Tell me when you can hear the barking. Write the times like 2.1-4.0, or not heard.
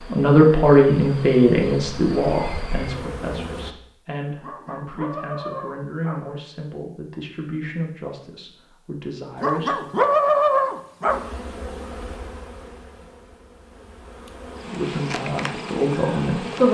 4.4-6.2, 9.4-11.2.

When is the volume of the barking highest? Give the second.
10 s.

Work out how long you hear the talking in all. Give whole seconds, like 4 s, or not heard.
12 s.